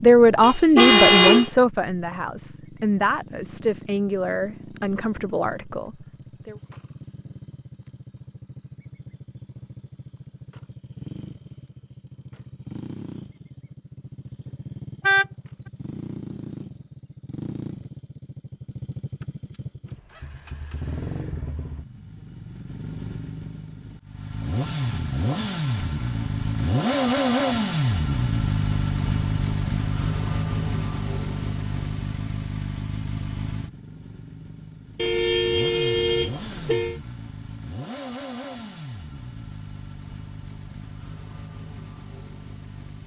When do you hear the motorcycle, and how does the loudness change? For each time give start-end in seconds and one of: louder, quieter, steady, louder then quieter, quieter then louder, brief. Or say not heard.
0.0-43.0 louder then quieter.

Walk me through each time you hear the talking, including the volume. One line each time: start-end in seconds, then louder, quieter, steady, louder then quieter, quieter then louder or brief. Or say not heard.
0.0-6.5 quieter.